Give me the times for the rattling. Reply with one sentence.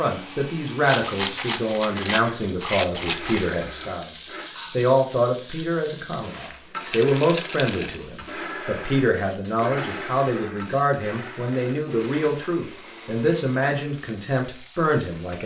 You can hear the rattling from 0.8 to 3.5 s, from 6.9 to 8.0 s and from 11.9 to 12.5 s.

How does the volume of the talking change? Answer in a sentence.
The loudness of the talking stays about the same.